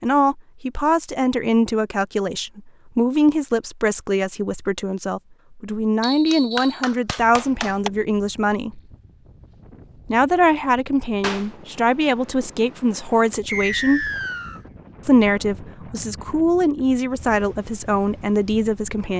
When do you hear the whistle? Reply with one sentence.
The whistle can be heard from 6.0 to 6.8 s and from 13.4 to 14.6 s.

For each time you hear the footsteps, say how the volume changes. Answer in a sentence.
The footsteps can't be heard in this clip.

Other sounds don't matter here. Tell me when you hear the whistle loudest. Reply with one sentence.
The loudest moment of the whistle is at 14 seconds.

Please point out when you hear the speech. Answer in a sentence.
The speech can be heard from 0.0 to 8.8 s, from 10.1 to 14.1 s and from 15.1 to 19.1 s.